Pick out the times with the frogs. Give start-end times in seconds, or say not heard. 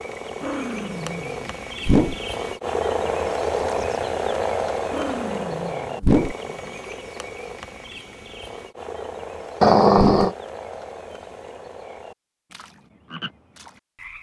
0.0-14.1.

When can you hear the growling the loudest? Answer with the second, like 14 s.
10 s.